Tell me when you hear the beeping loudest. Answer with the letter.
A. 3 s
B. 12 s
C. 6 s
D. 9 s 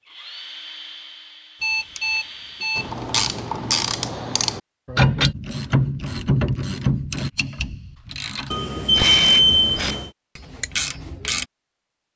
D.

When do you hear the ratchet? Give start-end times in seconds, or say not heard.
2.8-11.4.